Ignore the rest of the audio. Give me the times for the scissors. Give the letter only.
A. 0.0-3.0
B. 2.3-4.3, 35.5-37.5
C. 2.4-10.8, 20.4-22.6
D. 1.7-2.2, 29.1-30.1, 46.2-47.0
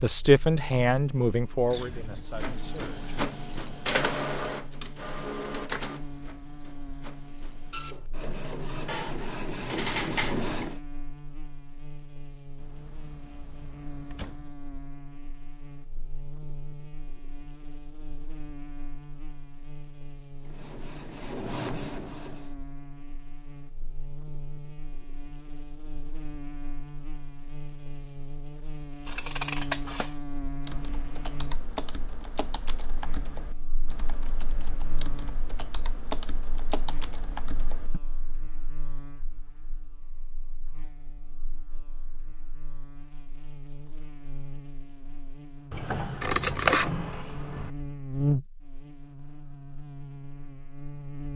D.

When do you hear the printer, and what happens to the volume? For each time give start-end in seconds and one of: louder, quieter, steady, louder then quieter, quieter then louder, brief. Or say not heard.
2.4-10.8 quieter then louder
20.4-22.6 brief.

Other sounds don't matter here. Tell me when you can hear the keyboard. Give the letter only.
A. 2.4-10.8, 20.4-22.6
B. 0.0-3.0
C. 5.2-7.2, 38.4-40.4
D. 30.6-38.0
D.